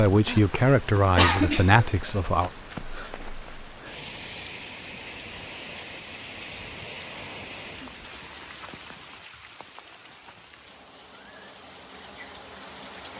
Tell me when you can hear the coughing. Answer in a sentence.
The coughing can be heard from 1.1 to 2.2 s.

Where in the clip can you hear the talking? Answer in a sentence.
You can hear the talking from 0.0 to 2.5 s.